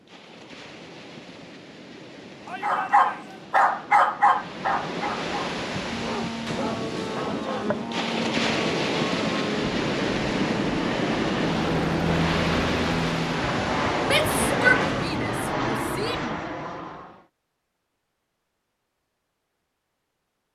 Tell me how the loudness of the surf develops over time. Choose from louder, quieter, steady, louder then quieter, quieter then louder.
louder.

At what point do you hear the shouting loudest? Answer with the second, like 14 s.
15 s.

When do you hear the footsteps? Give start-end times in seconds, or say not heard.
not heard.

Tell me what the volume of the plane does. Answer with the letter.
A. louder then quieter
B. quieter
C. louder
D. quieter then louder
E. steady
C.